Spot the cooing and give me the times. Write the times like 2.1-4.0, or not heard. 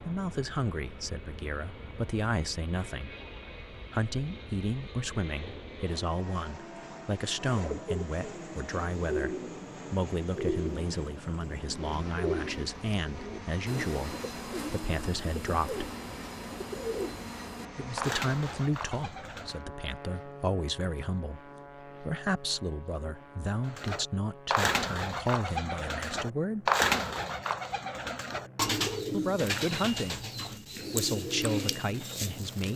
7.5-19.6, 23.6-32.7.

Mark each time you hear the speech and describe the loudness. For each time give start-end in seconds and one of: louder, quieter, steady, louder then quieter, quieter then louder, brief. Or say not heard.
0.1-15.8 steady
17.8-26.7 steady
29.1-30.2 brief
30.9-32.7 brief.